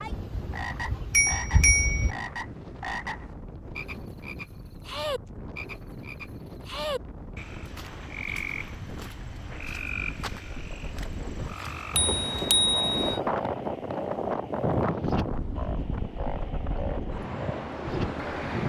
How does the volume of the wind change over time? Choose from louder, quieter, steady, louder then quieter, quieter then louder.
louder.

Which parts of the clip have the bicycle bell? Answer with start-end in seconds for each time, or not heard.
0.1-2.1, 11.9-13.2.